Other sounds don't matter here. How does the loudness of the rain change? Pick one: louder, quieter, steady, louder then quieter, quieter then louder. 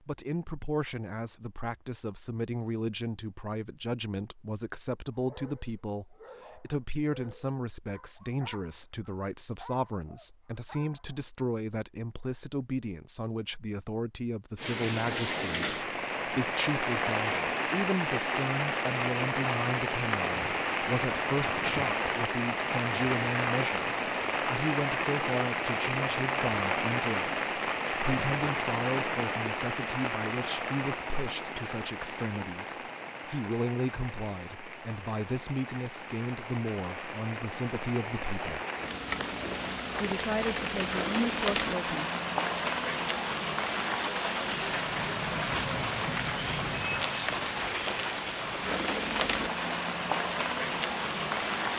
quieter then louder.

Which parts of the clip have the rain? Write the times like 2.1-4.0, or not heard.
14.6-51.7.